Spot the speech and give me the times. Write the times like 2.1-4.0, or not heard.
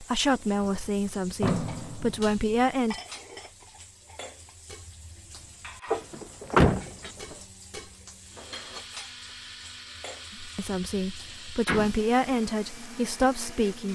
0.0-3.0, 10.4-13.9.